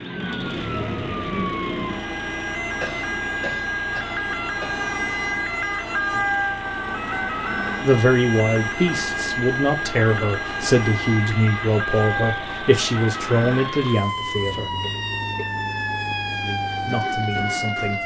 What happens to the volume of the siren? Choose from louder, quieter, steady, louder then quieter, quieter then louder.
steady.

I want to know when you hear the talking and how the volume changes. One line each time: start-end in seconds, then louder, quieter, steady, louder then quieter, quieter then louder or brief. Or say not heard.
7.8-14.7 steady
16.3-18.0 brief.